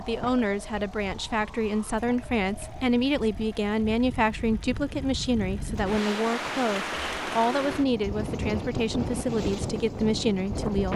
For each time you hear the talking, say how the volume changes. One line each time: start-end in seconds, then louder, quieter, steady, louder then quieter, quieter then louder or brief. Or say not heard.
0.0-10.9 steady.